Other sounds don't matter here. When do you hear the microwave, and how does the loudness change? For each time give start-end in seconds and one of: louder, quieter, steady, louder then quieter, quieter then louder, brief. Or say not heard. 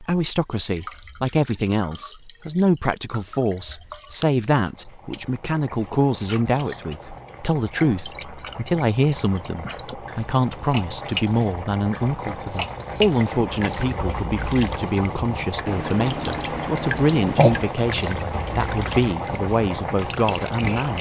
not heard.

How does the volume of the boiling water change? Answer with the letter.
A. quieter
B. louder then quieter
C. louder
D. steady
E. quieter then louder
C.